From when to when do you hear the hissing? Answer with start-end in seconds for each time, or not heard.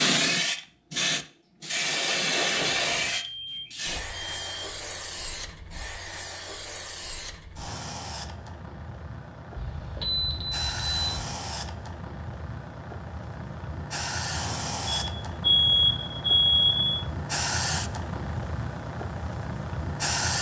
0.0-20.3.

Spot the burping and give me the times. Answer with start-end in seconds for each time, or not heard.
not heard.